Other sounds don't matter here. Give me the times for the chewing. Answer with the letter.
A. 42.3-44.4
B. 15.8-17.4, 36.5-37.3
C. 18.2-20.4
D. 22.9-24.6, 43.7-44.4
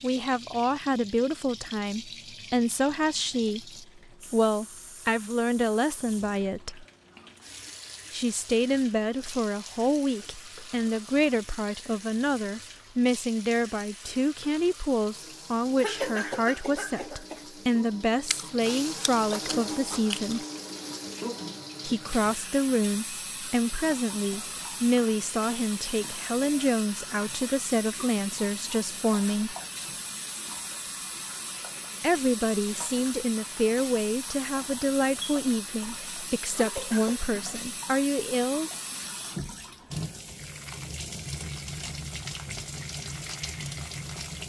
C.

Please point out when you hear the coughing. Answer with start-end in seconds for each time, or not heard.
15.8-17.4, 36.5-37.3.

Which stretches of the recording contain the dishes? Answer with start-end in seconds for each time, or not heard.
not heard.